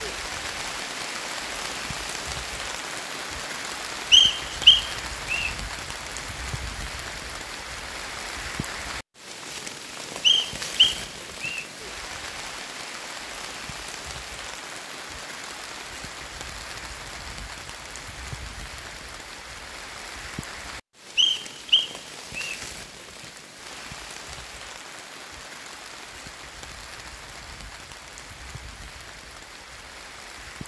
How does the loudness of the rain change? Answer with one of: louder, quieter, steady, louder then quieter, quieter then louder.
quieter.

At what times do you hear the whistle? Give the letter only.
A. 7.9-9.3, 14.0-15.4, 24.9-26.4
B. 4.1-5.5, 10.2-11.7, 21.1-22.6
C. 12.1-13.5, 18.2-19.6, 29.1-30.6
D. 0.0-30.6
B.